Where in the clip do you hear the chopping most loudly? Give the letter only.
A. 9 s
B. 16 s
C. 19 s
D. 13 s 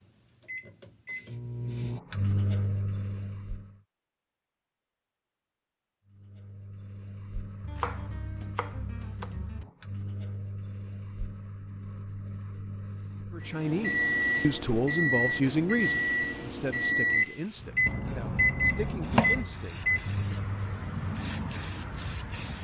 C.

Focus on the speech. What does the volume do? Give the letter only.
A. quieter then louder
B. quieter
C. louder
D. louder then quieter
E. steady
B.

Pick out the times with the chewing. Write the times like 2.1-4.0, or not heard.
not heard.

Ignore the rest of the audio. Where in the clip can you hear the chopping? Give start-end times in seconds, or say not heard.
7.6-9.7, 17.9-19.4.